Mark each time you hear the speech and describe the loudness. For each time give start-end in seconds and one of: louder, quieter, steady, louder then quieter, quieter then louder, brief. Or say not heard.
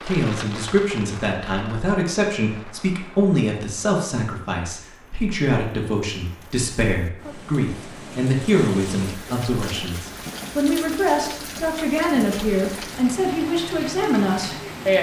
0.0-14.9 steady.